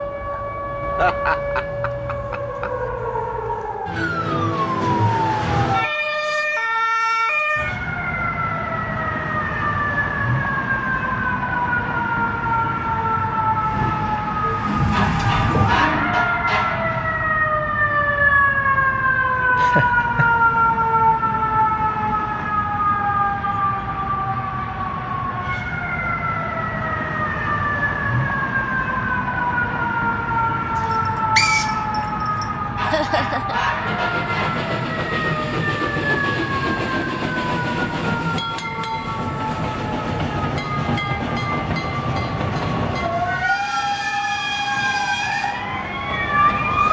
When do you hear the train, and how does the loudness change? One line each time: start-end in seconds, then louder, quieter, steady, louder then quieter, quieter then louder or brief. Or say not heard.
13.6-16.2 brief
33.7-46.8 steady.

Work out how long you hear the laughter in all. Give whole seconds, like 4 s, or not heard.
3 s.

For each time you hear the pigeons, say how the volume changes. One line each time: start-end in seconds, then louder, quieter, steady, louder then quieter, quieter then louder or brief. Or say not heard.
not heard.